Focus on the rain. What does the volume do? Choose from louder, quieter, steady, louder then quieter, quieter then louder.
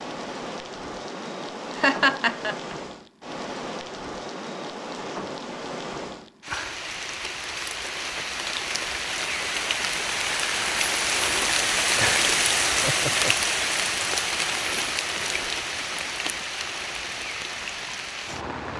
louder then quieter.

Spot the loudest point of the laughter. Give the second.
2 s.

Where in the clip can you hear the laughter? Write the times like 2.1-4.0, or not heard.
1.8-2.8, 11.9-13.3.